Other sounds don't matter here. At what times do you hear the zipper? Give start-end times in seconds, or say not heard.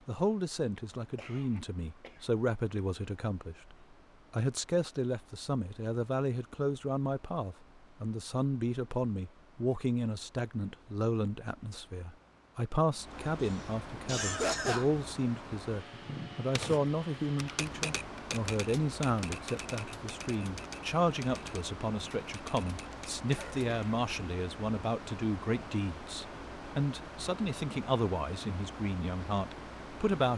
not heard.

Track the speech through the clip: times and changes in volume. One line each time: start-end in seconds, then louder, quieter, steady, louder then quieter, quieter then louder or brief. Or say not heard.
0.1-30.3 steady.